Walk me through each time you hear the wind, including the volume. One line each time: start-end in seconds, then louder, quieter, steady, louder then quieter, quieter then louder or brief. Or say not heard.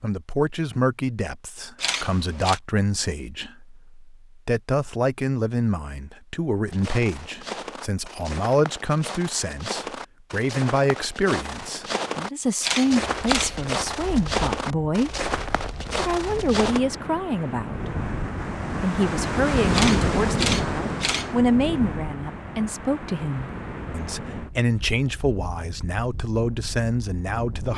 12.8-27.7 louder then quieter.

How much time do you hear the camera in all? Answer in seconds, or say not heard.
4 s.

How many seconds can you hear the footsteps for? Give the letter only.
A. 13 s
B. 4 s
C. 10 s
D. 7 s
C.